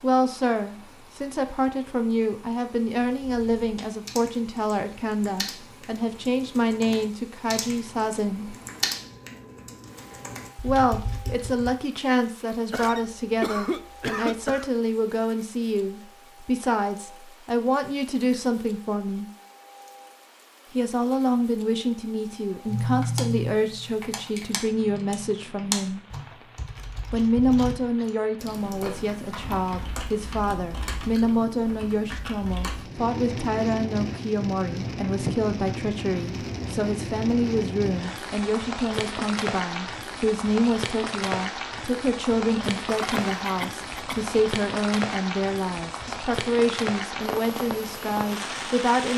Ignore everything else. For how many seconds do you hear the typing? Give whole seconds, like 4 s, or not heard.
19 s.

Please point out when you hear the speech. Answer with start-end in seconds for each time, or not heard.
0.0-8.6, 10.6-19.2, 20.8-26.0, 27.1-49.1.